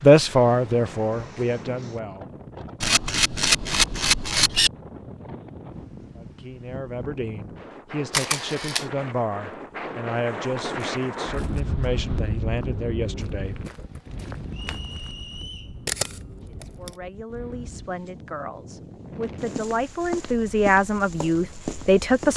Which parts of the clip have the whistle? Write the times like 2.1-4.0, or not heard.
14.5-15.8.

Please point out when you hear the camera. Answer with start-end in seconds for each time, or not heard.
2.8-4.7, 8.1-8.8, 15.8-16.9.